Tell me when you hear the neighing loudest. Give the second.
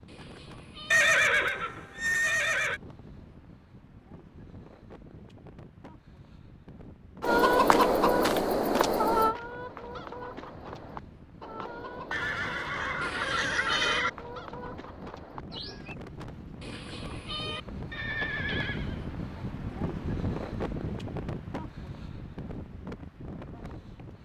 1 s.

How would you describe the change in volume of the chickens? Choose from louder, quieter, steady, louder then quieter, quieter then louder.
quieter.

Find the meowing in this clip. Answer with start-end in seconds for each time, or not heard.
0.1-1.0, 13.0-14.0, 16.6-17.6.